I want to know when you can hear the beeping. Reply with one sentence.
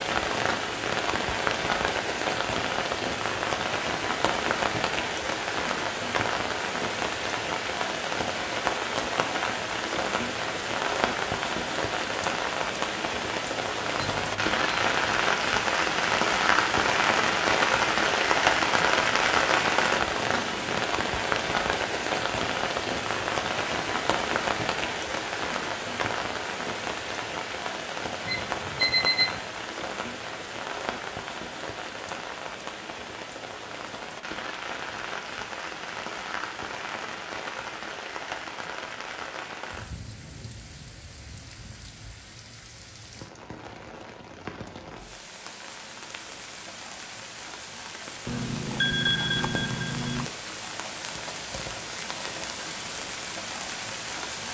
You can hear the beeping from 13.9 to 14.9 s, from 28.2 to 29.4 s and from 48.2 to 50.2 s.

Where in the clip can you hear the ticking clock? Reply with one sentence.
You can't hear the ticking clock here.